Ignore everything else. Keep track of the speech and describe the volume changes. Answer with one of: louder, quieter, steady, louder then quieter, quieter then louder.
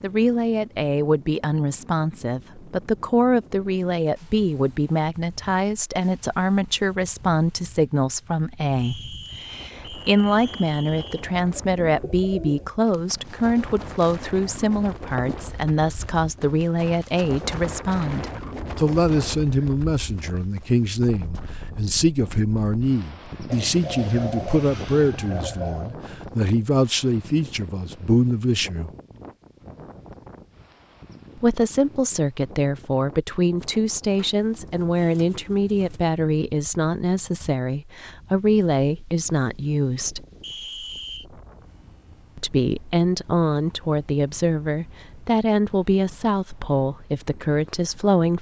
steady.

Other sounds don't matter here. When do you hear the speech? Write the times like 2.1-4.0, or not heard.
0.0-28.9, 31.4-40.2, 42.4-48.3.